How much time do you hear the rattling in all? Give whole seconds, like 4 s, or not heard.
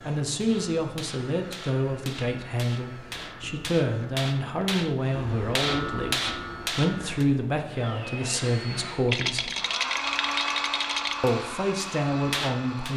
2 s.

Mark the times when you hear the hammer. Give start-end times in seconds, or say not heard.
0.3-7.2, 10.9-12.9.